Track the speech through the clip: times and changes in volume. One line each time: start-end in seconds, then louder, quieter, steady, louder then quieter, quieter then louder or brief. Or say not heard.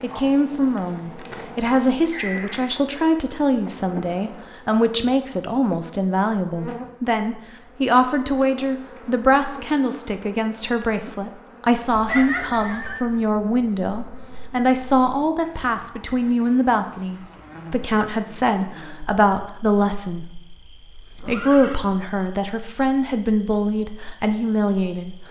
0.0-25.2 steady.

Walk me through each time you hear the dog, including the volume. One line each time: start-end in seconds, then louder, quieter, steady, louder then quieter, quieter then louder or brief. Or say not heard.
not heard.